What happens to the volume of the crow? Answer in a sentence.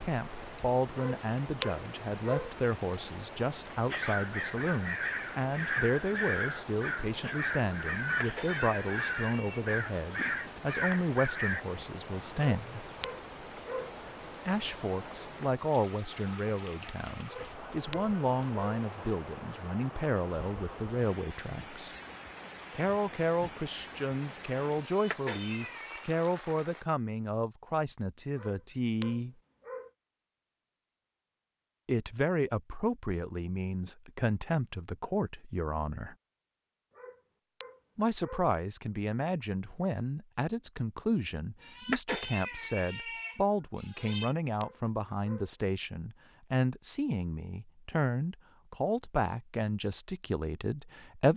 The volume of the crow stays about the same.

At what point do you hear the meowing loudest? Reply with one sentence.
The volume of the meowing peaks at 42 seconds.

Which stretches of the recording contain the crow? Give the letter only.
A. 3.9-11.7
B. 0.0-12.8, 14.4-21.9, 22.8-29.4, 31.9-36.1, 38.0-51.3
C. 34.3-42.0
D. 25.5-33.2
A.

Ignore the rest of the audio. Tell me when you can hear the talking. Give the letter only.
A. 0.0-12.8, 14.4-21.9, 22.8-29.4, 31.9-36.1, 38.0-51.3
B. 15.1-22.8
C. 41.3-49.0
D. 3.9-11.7
A.